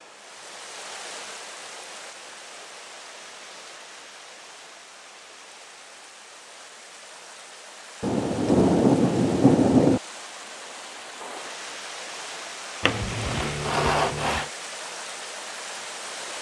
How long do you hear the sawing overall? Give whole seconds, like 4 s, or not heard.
2 s.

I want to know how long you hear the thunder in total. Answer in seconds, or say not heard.
2 s.